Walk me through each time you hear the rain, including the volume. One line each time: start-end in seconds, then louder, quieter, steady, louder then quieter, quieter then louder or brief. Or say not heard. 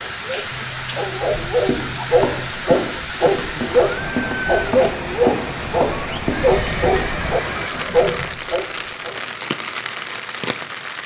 0.0-11.0 steady.